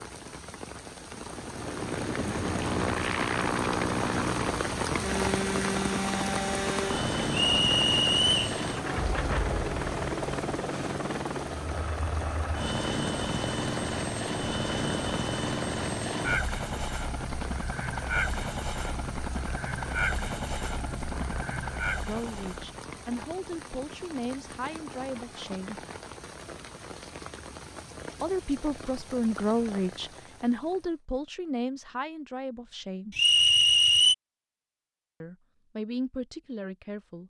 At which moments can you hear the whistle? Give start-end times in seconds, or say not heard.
7.3-8.6, 33.1-34.1.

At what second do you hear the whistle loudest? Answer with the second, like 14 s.
34 s.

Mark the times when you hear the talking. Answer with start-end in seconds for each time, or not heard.
22.1-25.9, 28.2-33.2, 35.2-37.2.